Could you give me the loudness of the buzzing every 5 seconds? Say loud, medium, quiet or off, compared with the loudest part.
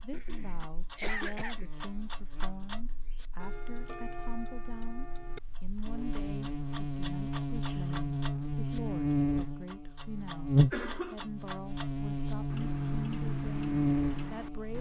quiet, loud, loud.